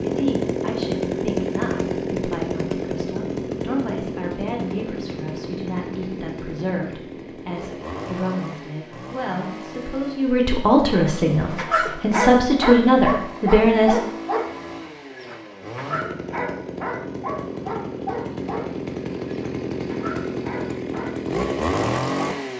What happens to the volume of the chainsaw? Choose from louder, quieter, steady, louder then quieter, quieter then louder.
quieter then louder.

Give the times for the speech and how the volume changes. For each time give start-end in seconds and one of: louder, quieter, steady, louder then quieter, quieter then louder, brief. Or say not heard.
0.0-14.0 louder.